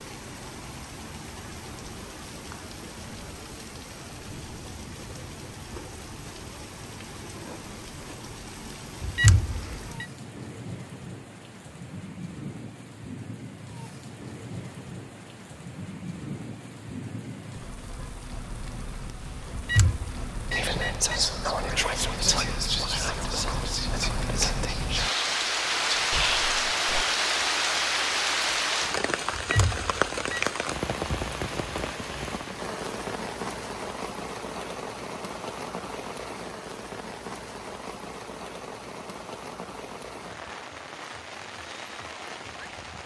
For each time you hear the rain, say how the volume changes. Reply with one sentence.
The rain can be heard from 0.0 to 43.0 s, getting louder then quieter.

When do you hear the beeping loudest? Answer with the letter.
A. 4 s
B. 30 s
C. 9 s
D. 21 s
C.